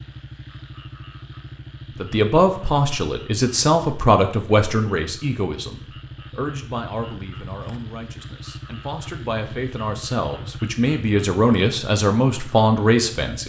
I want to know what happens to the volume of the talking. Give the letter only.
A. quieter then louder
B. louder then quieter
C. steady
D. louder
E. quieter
A.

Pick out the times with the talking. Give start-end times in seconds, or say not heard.
1.9-13.4.